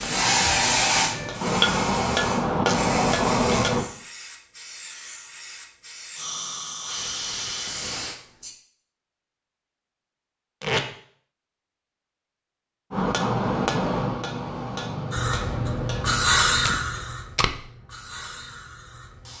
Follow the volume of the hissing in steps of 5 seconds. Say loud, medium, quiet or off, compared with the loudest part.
loud, medium, off, loud.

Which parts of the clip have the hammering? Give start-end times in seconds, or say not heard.
0.0-3.9, 12.9-16.3.